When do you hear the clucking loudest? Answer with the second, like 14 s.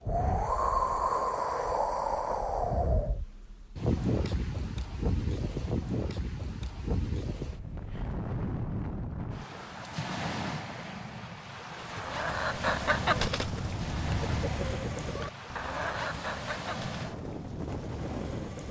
13 s.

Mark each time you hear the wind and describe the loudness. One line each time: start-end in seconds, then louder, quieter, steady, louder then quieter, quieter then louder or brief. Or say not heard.
0.0-18.6 quieter.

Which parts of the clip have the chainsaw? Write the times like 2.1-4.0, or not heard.
not heard.